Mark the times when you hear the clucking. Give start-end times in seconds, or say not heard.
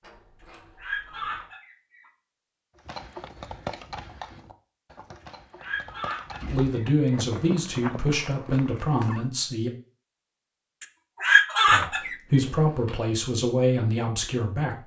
0.4-2.0, 5.2-7.3, 10.8-12.4.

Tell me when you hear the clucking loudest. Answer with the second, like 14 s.
11 s.